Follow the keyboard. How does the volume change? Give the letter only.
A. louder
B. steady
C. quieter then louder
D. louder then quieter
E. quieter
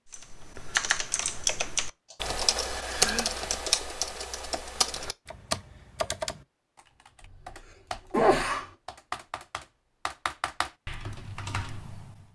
E.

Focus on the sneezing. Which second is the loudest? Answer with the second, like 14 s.
8 s.